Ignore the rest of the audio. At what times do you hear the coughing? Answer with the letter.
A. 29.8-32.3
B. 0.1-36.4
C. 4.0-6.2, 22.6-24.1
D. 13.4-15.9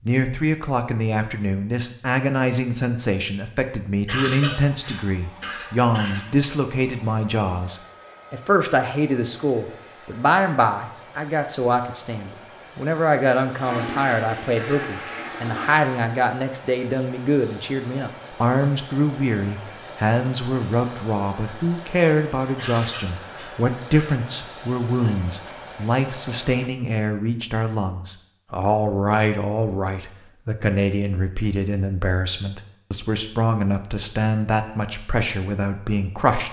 C.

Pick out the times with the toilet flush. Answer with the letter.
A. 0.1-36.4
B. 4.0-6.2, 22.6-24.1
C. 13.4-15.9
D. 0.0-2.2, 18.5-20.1
C.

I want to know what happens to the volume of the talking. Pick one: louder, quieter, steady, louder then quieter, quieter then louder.
steady.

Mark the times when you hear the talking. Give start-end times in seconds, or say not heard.
0.1-36.4.